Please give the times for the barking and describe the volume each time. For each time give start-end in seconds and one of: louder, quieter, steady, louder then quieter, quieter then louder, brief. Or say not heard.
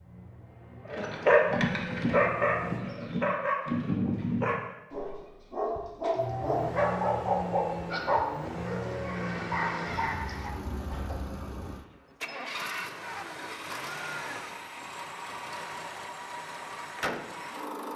0.9-11.2 quieter.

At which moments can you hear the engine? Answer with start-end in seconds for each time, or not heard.
0.0-2.9, 6.2-17.9.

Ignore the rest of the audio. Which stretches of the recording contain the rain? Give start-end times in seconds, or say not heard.
not heard.